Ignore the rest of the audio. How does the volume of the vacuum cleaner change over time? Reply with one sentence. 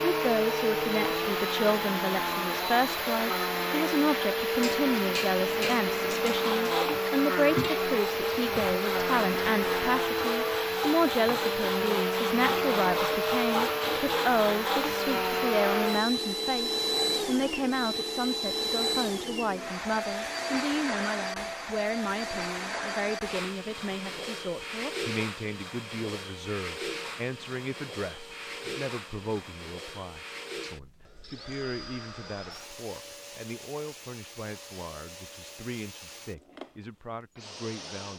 The loudness of the vacuum cleaner goes down.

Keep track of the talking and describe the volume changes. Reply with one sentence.
The loudness of the talking goes down.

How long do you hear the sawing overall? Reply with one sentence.
The sawing can be heard for 9 seconds in total.